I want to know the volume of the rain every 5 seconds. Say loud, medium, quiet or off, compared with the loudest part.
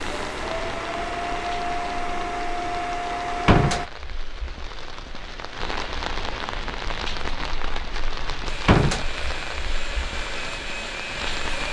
medium, loud, loud.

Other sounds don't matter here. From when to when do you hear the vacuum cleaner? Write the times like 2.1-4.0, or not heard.
0.0-3.9, 8.4-11.6.